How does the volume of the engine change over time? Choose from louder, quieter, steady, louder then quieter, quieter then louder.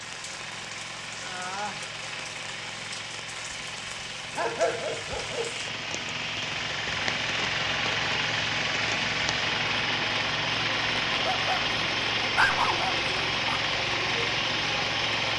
louder.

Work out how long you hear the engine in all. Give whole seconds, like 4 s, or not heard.
15 s.